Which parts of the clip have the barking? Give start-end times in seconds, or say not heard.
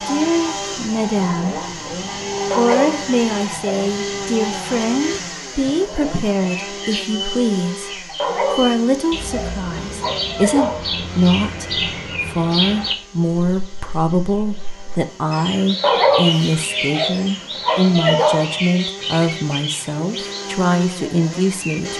2.5-3.9, 8.2-11.1, 15.8-18.6.